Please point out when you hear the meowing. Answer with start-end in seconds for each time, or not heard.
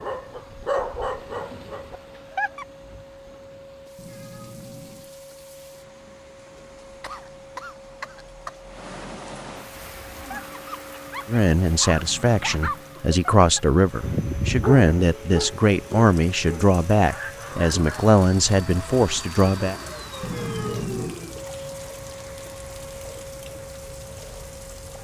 4.0-5.2, 11.9-12.8, 20.2-21.1.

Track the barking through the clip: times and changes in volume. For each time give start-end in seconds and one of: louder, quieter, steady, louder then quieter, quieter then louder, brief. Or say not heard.
0.0-2.6 brief
10.2-18.1 louder then quieter.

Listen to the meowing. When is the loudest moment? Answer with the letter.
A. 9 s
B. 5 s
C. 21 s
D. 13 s
C.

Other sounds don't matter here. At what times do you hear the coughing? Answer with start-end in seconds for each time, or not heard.
7.0-8.6.